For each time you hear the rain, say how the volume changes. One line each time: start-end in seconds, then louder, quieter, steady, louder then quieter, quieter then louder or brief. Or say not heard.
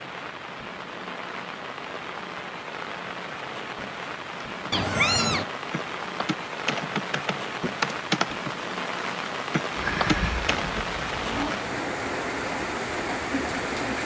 0.0-14.0 louder.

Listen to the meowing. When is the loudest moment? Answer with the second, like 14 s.
5 s.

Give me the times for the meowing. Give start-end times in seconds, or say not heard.
4.7-5.5, 9.8-11.6.